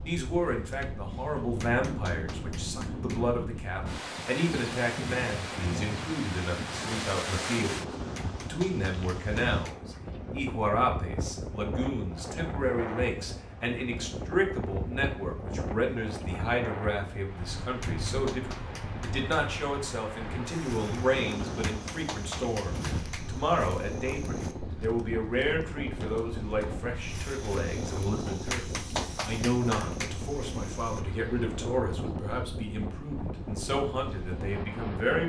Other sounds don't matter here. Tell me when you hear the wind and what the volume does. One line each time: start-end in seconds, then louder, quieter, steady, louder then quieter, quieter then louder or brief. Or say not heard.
0.0-35.2 steady.